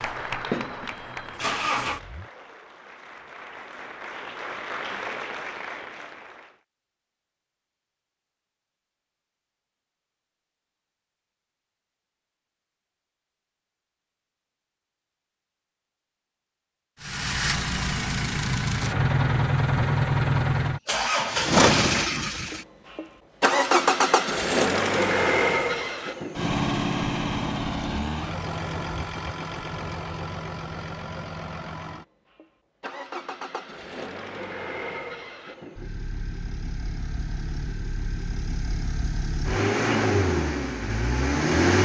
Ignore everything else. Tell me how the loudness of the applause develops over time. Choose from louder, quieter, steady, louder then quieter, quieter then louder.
quieter then louder.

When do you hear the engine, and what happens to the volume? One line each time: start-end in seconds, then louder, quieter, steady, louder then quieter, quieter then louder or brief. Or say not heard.
0.0-2.2 brief
17.0-41.8 quieter then louder.